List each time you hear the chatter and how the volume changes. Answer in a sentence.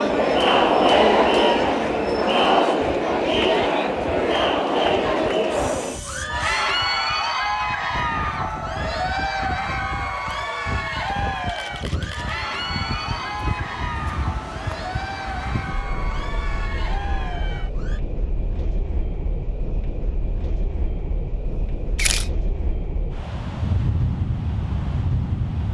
The chatter can be heard from 0.0 to 18.0 s, getting quieter.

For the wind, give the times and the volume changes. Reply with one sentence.
The wind can be heard from 0.2 to 25.7 s, getting louder.